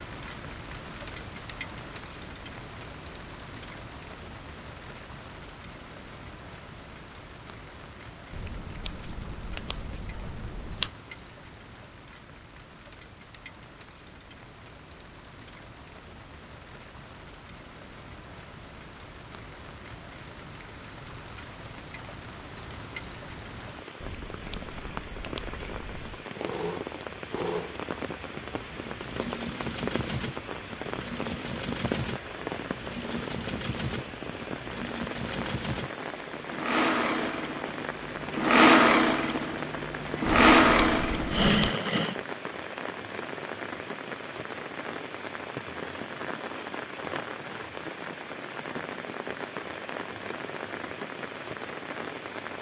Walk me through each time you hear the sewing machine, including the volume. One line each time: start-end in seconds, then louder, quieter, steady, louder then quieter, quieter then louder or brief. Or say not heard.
26.4-42.1 louder.